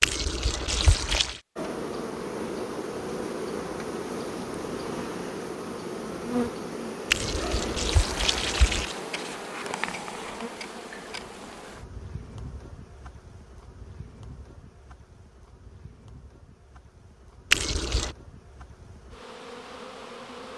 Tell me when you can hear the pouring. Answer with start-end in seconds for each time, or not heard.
0.0-1.4, 7.1-8.9, 17.5-18.1.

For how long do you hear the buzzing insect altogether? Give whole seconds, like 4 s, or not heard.
19 s.